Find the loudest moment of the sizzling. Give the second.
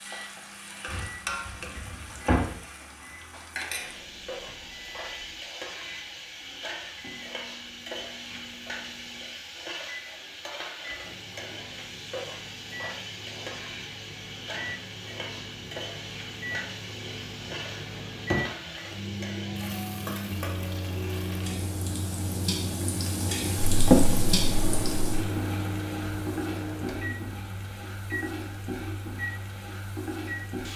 24 s.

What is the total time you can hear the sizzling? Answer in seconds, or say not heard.
31 s.